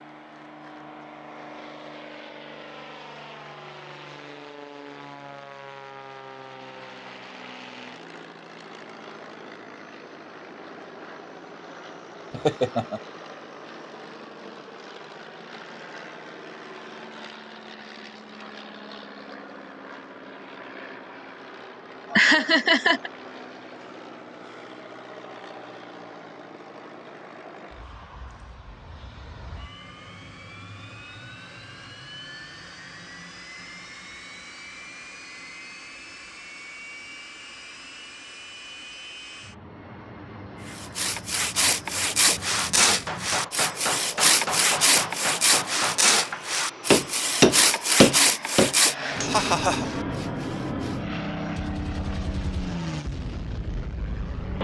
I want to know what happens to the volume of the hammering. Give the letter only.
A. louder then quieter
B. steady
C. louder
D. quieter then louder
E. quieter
C.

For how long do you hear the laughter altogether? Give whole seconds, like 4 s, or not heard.
2 s.